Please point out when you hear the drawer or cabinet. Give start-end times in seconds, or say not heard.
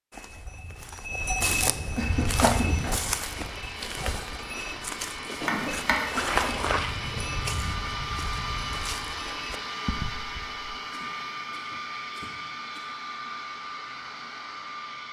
5.5-6.1.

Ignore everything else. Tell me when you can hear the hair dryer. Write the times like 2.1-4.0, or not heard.
2.0-15.0.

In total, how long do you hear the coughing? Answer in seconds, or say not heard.
4 s.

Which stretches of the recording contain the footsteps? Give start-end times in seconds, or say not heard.
0.1-10.6.